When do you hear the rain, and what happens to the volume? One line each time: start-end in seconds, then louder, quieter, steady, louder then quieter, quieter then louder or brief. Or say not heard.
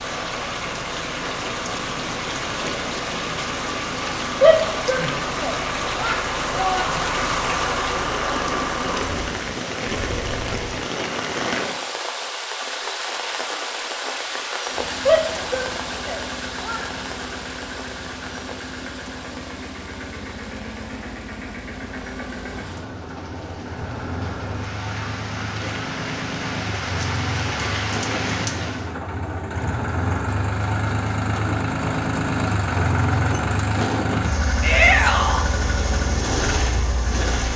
0.0-28.9 quieter then louder.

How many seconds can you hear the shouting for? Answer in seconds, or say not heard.
5 s.